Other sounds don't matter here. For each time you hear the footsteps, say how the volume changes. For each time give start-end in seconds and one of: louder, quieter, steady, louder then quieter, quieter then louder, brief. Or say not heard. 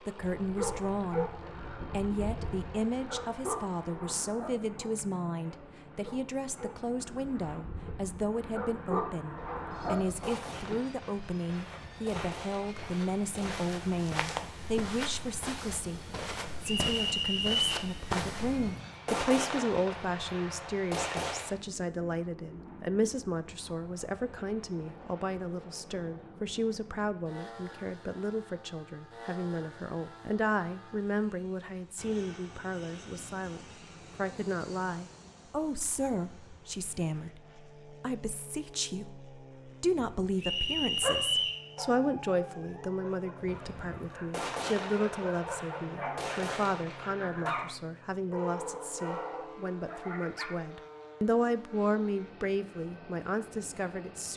11.3-18.8 louder.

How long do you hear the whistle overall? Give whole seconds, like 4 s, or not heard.
2 s.